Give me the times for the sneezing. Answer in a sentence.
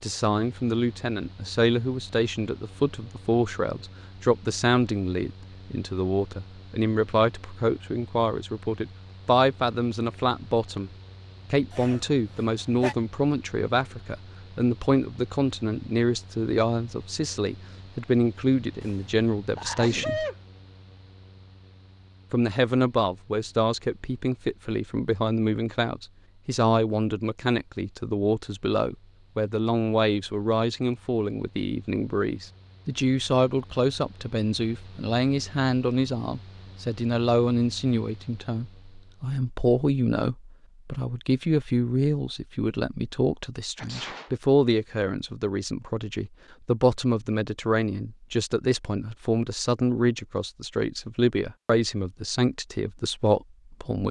You can hear the sneezing from 11.7 to 12.9 s, from 18.8 to 20.4 s and from 43.8 to 44.3 s.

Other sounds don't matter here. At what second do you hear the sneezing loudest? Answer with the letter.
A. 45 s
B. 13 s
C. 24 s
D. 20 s
D.